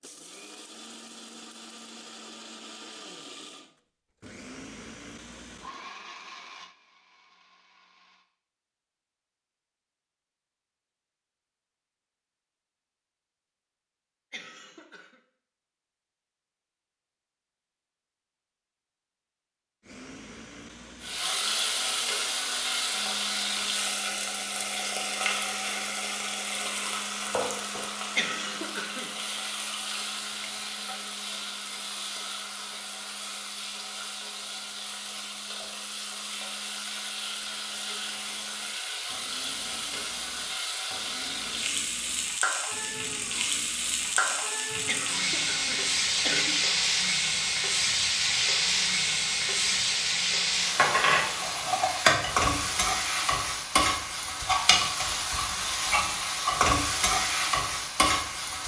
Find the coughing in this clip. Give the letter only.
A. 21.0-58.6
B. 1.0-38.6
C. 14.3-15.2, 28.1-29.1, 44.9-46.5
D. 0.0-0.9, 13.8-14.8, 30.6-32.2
C.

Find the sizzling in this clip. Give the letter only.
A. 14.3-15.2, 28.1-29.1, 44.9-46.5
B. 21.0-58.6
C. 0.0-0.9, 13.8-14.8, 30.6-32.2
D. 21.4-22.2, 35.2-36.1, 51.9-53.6
B.